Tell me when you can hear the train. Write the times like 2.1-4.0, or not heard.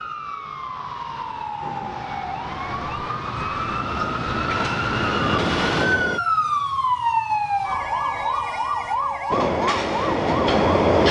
1.6-6.2, 9.3-11.0.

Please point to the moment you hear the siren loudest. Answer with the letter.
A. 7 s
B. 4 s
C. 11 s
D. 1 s
A.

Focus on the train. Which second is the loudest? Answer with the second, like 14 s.
11 s.